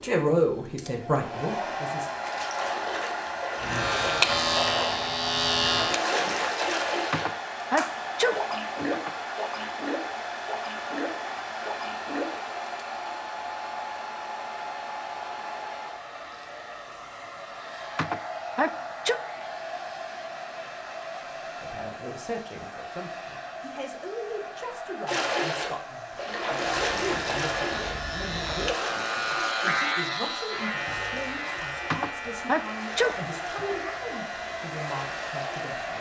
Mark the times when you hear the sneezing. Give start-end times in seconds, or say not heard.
7.1-9.1, 17.9-19.2, 31.9-33.8.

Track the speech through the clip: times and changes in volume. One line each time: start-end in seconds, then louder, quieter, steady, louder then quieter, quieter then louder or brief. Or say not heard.
0.0-2.1 brief
21.6-35.9 steady.